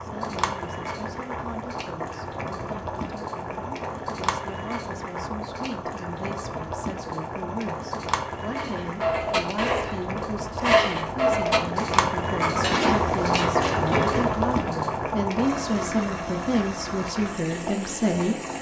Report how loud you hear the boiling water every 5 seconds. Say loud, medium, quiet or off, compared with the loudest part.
medium, medium, loud, medium.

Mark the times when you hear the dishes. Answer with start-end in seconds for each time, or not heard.
8.6-14.4.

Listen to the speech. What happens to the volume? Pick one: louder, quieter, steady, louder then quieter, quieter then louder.
louder.